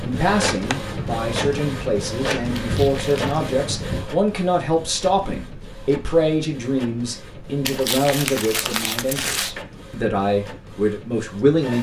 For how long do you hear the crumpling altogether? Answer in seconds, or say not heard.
3 s.